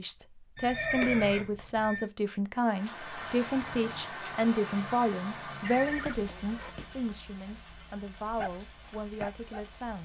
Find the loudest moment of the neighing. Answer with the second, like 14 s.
1 s.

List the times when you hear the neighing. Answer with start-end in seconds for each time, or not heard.
0.6-2.0, 5.6-6.8.